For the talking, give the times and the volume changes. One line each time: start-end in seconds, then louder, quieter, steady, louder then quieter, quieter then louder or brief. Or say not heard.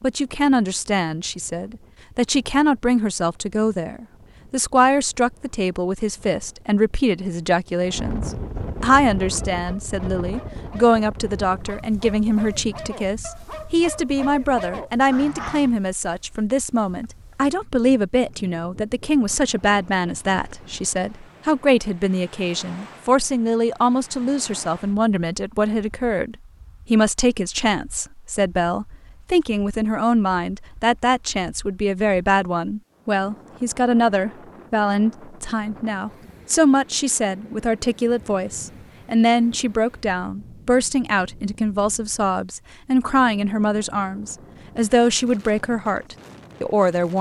0.0-47.1 steady.